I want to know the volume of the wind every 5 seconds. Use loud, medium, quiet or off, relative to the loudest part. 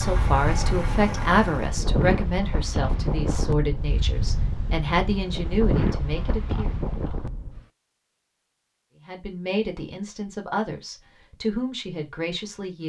loud, loud, off.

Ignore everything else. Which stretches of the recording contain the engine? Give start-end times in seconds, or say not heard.
0.0-1.8.